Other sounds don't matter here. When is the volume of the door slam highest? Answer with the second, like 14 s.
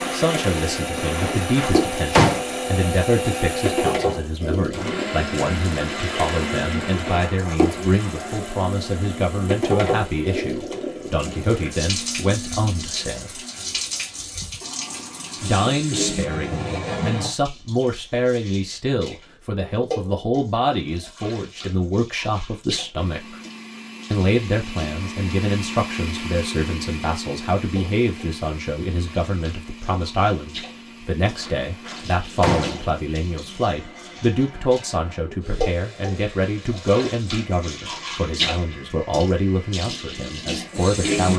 2 s.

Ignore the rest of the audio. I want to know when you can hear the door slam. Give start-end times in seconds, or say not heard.
0.9-2.4, 31.2-33.0.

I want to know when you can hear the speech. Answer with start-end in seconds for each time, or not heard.
0.1-13.4, 15.4-23.4, 24.1-41.3.